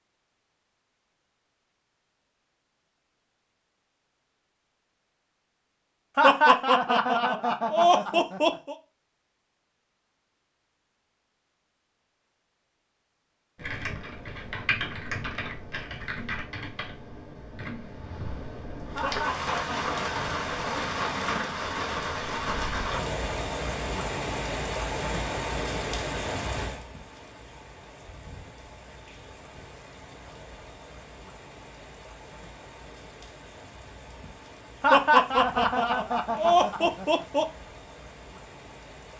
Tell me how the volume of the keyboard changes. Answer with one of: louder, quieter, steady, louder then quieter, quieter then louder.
quieter.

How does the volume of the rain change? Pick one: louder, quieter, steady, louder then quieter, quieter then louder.
quieter.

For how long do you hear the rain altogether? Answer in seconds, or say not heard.
20 s.